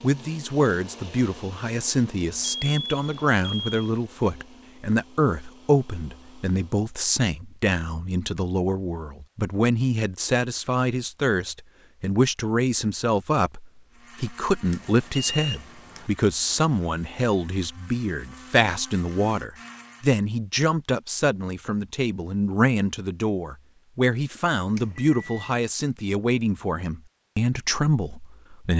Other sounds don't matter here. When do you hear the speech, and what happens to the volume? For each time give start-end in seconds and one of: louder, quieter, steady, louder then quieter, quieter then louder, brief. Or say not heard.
0.0-28.7 steady.